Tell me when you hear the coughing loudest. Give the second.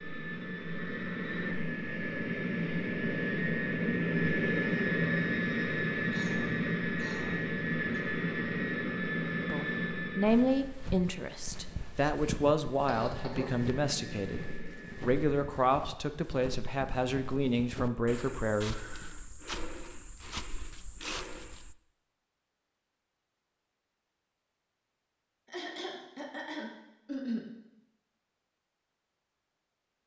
27 s.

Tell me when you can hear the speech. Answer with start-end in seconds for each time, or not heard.
9.4-18.8.